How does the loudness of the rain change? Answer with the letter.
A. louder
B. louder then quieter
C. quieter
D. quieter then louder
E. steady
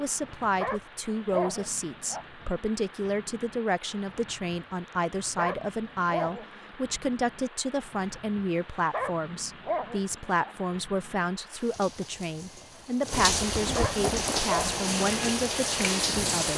A.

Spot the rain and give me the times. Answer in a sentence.
You can hear the rain from 0.0 to 16.5 s.